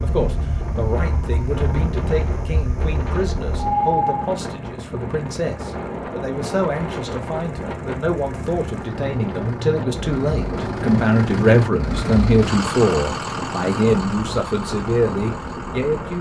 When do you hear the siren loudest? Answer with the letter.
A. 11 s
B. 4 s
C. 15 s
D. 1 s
B.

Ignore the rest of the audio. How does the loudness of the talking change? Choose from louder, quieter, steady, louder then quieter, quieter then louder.
louder.